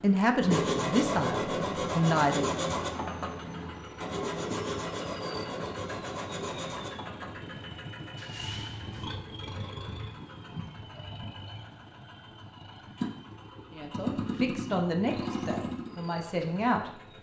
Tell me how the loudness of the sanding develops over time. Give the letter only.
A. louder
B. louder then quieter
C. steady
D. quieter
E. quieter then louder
D.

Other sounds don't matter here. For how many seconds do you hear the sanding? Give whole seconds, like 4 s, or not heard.
9 s.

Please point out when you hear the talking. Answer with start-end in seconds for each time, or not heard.
0.0-2.5, 13.7-16.9.